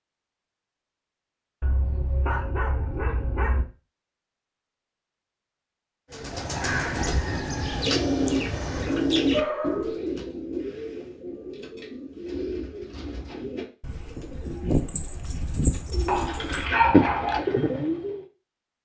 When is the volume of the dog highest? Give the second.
17 s.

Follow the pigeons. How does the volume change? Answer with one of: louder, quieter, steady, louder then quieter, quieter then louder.
quieter then louder.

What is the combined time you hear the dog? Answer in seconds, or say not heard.
4 s.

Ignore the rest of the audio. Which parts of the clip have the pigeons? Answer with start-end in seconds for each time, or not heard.
6.1-18.2.